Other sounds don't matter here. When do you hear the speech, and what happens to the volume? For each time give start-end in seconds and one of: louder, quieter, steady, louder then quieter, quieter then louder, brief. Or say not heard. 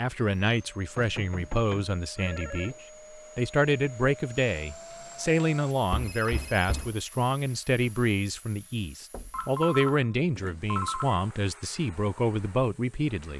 0.0-2.8 brief
3.4-13.3 steady.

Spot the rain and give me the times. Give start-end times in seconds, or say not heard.
not heard.